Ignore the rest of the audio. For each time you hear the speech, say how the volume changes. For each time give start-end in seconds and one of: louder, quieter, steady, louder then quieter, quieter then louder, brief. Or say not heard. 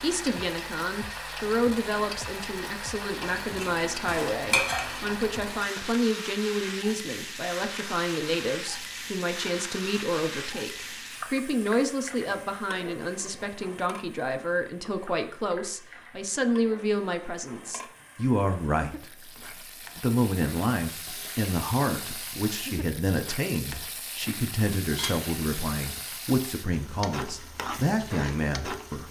0.0-19.1 steady
19.9-29.0 steady.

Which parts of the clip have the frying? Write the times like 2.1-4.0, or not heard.
0.0-29.0.